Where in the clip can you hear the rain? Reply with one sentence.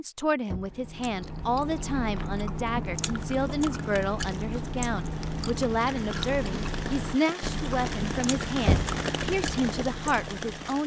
You can hear the rain from 3.0 to 10.8 s.